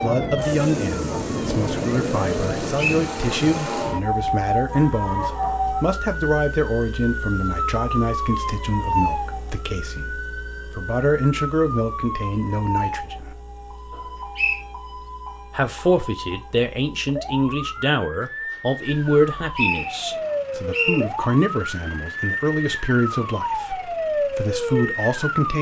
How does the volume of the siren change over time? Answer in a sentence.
The loudness of the siren goes down, then up.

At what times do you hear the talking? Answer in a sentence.
You can hear the talking from 0.0 to 13.3 s and from 15.5 to 25.5 s.